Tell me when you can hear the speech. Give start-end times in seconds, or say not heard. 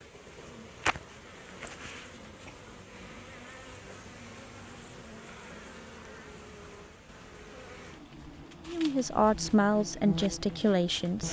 8.7-11.2.